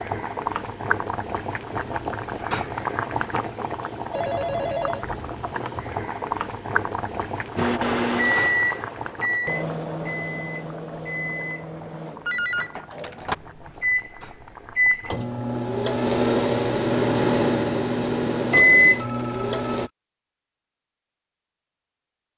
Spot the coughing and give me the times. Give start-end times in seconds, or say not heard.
not heard.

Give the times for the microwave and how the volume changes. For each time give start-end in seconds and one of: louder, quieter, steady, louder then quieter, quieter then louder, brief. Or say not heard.
7.5-19.9 quieter then louder.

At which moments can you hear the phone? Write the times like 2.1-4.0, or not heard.
4.1-5.0, 12.2-13.2, 18.9-19.9.